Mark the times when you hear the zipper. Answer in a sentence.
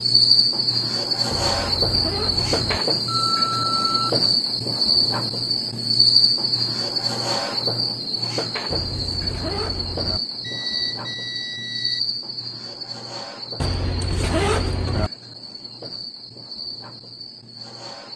You can hear the zipper from 1.4 to 2.8 s, from 8.7 to 10.2 s and from 13.6 to 15.1 s.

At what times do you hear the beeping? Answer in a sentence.
You can hear the beeping from 3.0 to 4.2 s and from 10.4 to 12.0 s.